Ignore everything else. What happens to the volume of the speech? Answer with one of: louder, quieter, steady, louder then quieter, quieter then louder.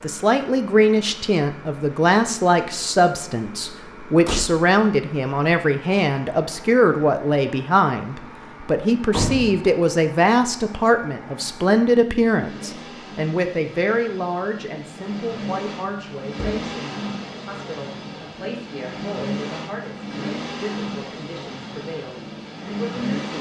quieter.